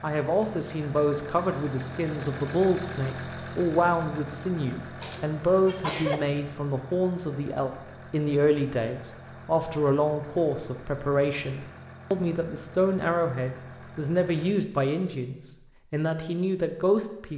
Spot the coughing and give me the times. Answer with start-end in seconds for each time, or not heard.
5.0-6.2.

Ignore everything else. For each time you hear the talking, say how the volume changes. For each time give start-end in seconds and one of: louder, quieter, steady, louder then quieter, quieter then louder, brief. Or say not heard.
0.0-17.3 steady.